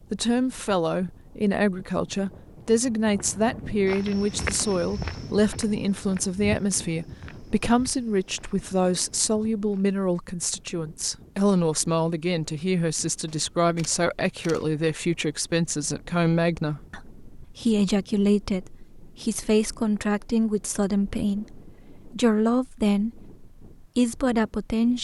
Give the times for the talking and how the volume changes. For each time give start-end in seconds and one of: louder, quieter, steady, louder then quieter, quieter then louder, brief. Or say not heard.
0.1-24.9 steady.